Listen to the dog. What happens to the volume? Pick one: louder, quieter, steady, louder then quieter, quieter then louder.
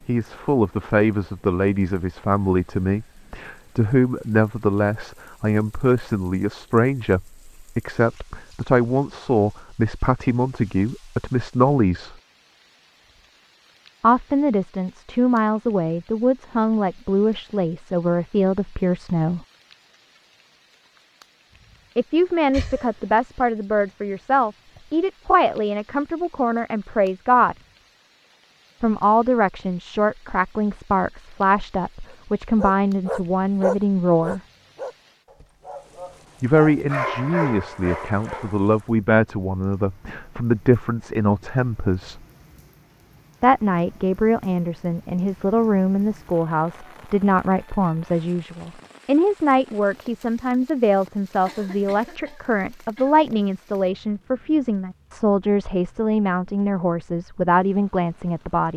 quieter then louder.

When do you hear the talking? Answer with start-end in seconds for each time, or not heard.
0.1-12.2, 14.0-19.4, 21.9-27.6, 28.8-34.4, 36.4-42.2, 43.4-58.7.